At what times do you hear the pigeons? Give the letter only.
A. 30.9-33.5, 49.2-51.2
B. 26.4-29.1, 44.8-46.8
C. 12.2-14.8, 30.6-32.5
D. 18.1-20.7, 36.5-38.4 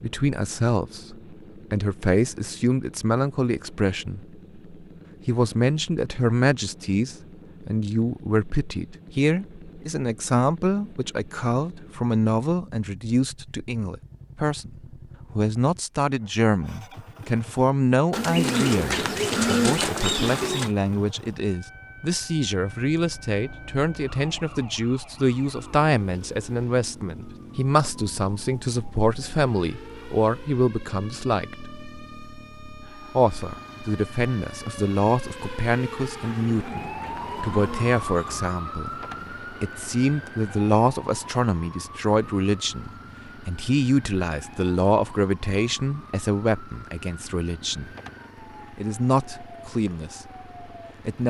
D.